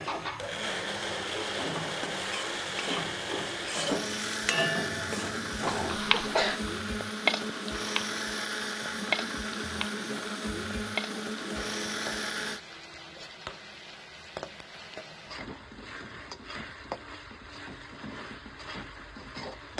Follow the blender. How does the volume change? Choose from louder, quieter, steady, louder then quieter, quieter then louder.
steady.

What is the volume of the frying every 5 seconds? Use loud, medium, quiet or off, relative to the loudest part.
loud, loud, medium, medium.